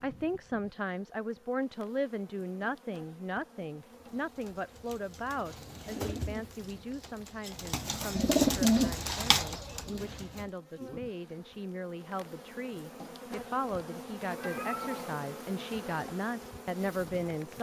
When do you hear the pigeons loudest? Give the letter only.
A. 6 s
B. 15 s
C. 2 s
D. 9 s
D.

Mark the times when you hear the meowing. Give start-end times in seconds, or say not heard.
14.3-15.2.